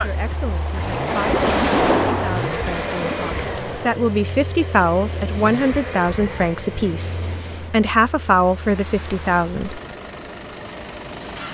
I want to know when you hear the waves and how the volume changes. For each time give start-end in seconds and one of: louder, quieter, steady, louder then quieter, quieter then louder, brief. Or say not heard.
0.0-11.5 quieter.